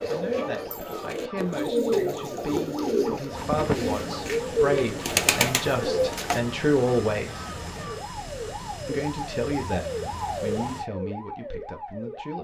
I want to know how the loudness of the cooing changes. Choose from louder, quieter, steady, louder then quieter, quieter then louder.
louder.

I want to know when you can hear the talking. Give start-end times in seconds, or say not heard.
0.1-7.4, 8.8-12.4.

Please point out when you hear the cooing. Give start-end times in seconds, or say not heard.
0.0-6.4.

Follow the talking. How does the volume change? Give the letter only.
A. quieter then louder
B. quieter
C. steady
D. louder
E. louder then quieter
E.